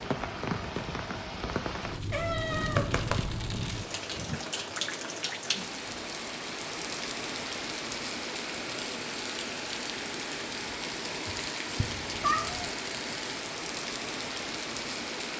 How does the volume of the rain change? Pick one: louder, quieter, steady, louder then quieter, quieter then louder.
steady.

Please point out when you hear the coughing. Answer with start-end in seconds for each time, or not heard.
not heard.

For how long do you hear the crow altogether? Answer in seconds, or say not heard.
not heard.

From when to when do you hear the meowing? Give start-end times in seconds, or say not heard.
2.1-3.7, 11.8-12.7.